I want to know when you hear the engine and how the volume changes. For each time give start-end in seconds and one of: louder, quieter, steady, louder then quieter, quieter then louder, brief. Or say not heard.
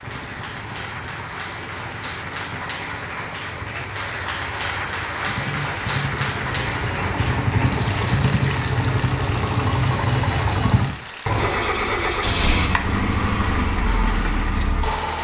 0.0-15.1 louder.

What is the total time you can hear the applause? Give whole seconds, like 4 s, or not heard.
15 s.